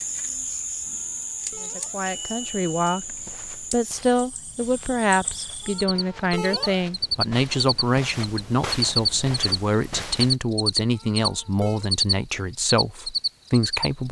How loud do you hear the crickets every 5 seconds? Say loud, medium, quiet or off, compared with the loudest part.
medium, loud, loud.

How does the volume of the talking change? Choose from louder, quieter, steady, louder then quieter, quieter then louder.
steady.